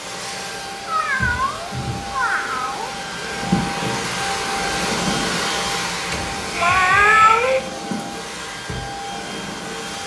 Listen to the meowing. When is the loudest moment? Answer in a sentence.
The loudest moment of the meowing is at 7 seconds.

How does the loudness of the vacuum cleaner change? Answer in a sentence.
The volume of the vacuum cleaner goes up, then down.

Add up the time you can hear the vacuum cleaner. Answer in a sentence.
You can hear the vacuum cleaner for 10 seconds altogether.